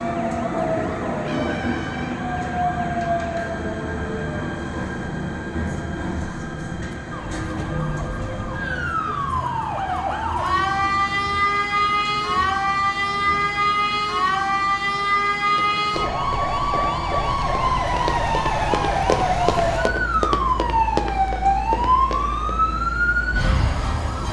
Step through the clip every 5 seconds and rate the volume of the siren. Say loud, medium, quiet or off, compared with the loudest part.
quiet, medium, loud, loud, loud.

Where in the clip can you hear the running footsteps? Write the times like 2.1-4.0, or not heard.
15.6-22.5.